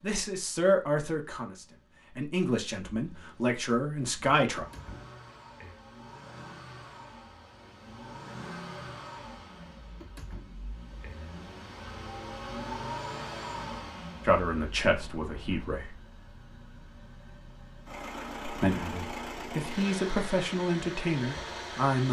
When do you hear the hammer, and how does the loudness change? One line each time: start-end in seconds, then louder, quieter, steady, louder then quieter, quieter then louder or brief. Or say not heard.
not heard.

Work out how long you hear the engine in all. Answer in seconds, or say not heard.
22 s.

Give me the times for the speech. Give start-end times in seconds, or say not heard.
0.0-4.7, 14.2-15.9, 18.4-22.0.